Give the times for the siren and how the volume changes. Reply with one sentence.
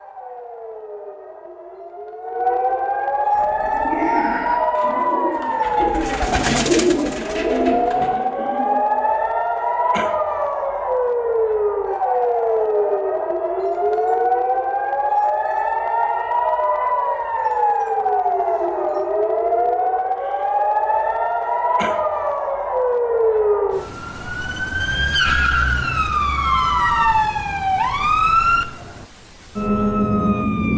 You can hear the siren from 0.0 to 30.7 s, at a steady volume.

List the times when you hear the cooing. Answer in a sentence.
You can hear the cooing from 3.4 to 8.8 s.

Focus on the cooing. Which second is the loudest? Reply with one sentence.
The volume of the cooing peaks at 7 seconds.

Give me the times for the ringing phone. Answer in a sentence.
You can hear the ringing phone from 26.4 to 27.1 s.